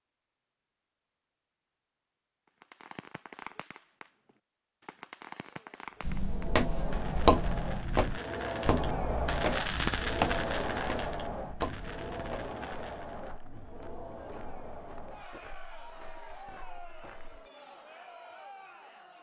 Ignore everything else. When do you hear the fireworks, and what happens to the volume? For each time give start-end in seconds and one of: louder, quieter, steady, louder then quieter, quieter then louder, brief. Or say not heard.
2.5-13.2 louder then quieter.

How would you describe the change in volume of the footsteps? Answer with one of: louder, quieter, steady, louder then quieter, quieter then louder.
quieter.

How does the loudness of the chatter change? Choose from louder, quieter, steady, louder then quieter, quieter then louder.
louder then quieter.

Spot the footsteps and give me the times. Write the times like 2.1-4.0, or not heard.
6.0-17.5.